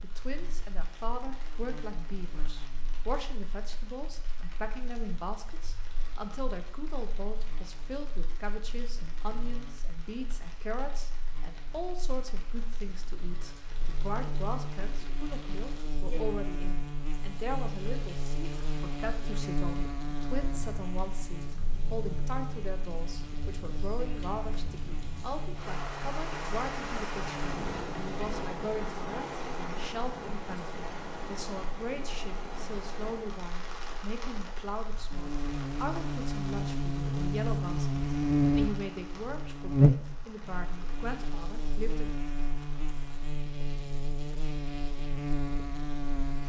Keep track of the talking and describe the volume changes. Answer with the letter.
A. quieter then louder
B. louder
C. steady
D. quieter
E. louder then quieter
C.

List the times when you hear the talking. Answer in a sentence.
The talking can be heard from 0.0 to 42.1 s.